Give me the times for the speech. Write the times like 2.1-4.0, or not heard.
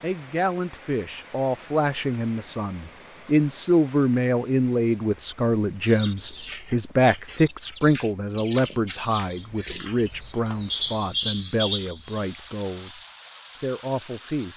0.0-13.0, 13.6-14.5.